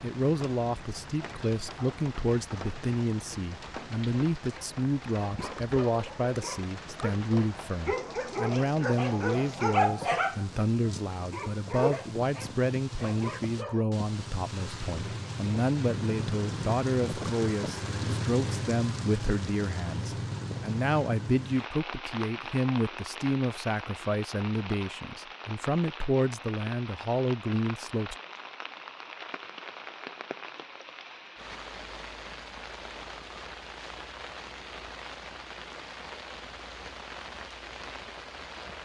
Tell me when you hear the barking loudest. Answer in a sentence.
The loudest moment of the barking is at 10 seconds.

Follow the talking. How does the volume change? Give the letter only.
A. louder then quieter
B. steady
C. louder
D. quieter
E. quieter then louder
B.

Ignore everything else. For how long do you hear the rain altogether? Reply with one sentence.
The rain can be heard for 39 seconds in total.